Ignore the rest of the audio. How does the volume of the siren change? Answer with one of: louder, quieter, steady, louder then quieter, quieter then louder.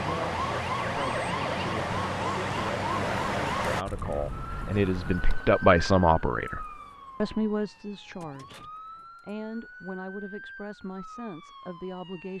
quieter.